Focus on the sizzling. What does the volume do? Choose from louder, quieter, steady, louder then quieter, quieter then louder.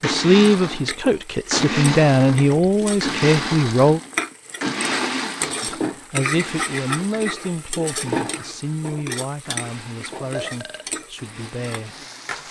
louder then quieter.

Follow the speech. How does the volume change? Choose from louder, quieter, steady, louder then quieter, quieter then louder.
quieter.